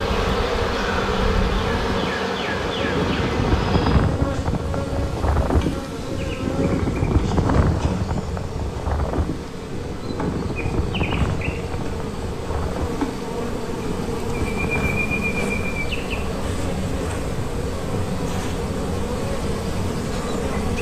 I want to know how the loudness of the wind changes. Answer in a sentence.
The loudness of the wind goes down.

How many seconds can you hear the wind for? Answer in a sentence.
You can hear the wind for 21 seconds altogether.